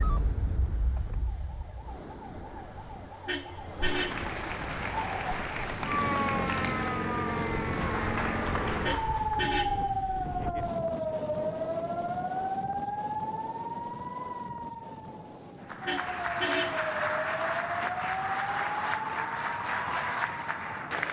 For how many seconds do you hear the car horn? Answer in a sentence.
The car horn can be heard for 3 seconds in total.